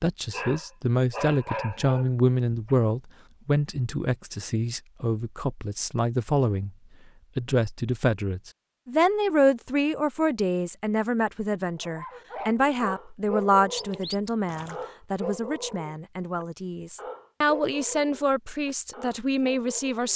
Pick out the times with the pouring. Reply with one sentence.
You can hear the pouring from 13.8 to 14.8 s.